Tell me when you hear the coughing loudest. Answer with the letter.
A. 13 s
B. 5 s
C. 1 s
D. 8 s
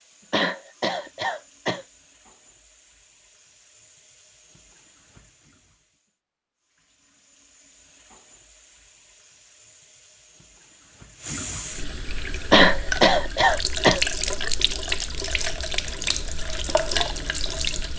A.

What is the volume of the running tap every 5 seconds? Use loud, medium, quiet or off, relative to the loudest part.
quiet, quiet, loud, loud.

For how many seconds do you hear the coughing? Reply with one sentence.
You can hear the coughing for 3 seconds altogether.